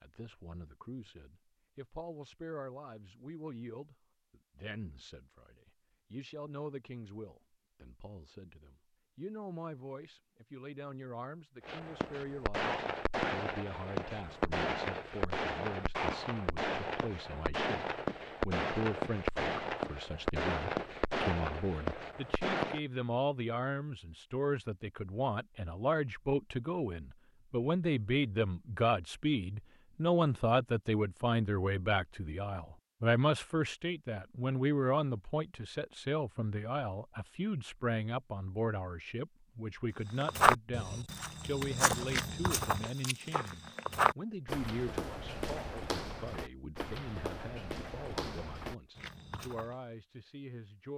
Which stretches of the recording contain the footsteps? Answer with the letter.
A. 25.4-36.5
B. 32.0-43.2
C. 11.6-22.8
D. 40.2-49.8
D.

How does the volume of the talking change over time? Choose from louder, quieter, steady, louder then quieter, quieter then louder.
louder then quieter.